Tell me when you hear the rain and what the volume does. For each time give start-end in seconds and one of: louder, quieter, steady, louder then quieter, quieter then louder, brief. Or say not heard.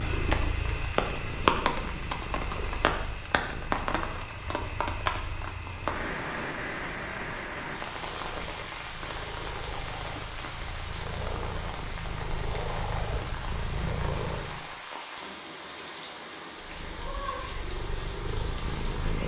0.0-19.2 quieter.